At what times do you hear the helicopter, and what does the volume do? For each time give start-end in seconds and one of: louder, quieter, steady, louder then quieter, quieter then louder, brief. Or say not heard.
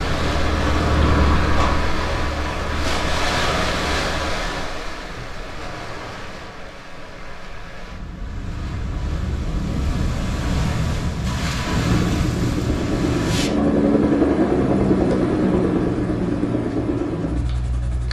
0.0-4.4 quieter
11.8-18.0 louder then quieter.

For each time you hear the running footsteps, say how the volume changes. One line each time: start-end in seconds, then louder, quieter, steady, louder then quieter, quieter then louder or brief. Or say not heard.
not heard.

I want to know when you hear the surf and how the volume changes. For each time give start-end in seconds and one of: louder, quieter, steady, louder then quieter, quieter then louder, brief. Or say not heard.
0.0-13.5 quieter then louder.